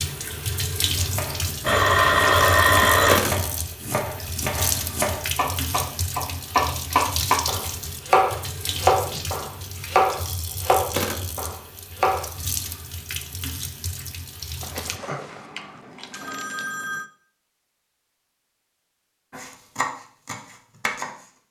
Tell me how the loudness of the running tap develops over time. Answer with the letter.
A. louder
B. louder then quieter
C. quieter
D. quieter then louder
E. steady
C.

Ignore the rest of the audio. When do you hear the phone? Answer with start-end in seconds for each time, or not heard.
1.6-3.2, 14.6-17.1.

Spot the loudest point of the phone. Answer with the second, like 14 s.
3 s.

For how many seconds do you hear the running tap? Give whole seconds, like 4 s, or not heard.
15 s.